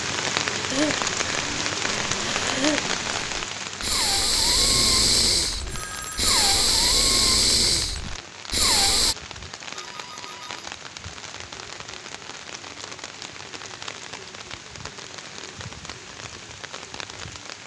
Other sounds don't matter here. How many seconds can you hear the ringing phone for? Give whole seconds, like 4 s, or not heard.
2 s.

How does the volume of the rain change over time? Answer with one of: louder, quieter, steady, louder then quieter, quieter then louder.
quieter.